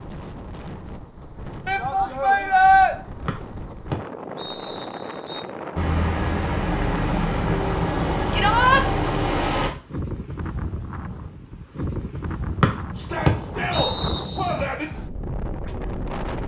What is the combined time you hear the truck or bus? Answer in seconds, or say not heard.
4 s.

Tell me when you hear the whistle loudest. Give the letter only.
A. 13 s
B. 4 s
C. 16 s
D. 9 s
A.